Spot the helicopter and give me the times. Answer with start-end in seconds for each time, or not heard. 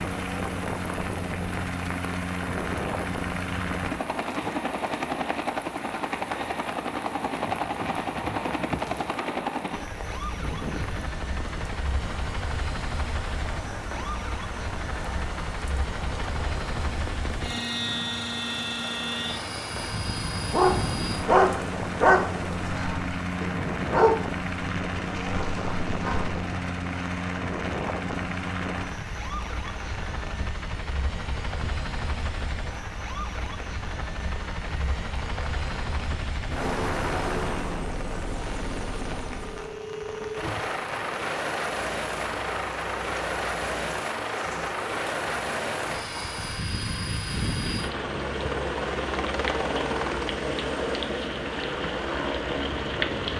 0.0-53.3.